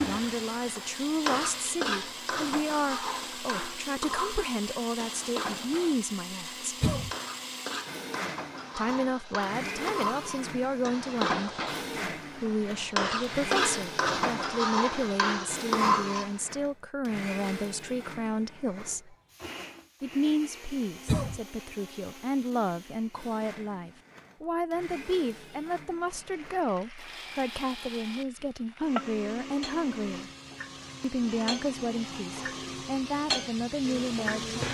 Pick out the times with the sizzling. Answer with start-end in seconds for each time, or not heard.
0.0-16.4, 26.1-34.6.